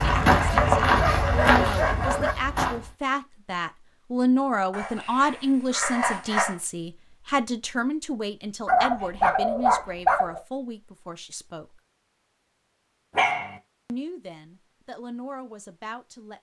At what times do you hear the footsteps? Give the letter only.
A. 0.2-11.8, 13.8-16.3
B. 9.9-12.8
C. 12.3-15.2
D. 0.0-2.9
D.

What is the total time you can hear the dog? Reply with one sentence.
The dog can be heard for 6 seconds in total.